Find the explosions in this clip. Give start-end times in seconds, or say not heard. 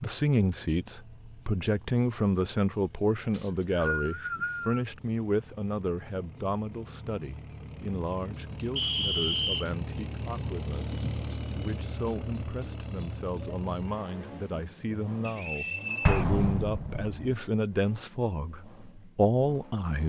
16.1-17.4.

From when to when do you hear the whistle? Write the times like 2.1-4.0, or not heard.
3.3-4.8, 8.8-9.7, 15.2-16.2.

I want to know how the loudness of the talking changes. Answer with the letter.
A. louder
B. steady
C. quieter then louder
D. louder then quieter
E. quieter
C.